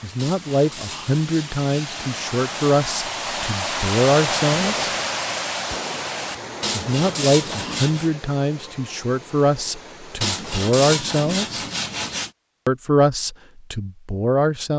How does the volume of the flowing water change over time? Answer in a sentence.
The volume of the flowing water goes up, then down.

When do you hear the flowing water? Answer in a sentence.
You can hear the flowing water from 0.0 to 10.4 s.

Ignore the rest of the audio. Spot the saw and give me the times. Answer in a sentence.
You can hear the saw from 0.1 to 3.0 s, from 6.6 to 8.1 s and from 10.2 to 12.3 s.